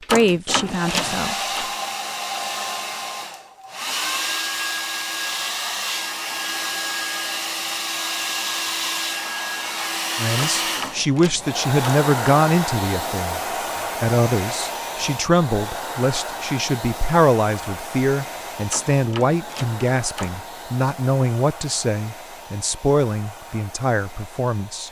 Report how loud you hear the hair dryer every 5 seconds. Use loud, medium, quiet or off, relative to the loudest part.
loud, loud, loud, medium, quiet.